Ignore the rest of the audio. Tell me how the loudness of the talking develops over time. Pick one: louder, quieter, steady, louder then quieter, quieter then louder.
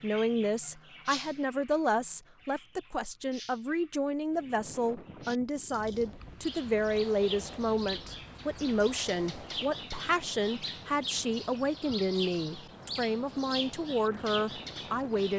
steady.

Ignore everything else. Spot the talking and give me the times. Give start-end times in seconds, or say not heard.
0.0-15.3.